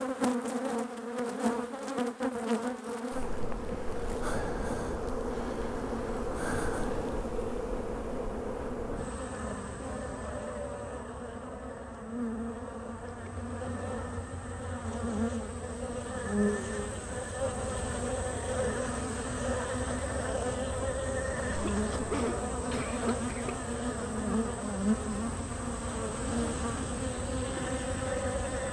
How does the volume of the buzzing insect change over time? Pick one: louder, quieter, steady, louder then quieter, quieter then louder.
steady.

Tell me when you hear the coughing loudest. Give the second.
22 s.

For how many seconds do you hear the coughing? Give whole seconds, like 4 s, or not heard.
2 s.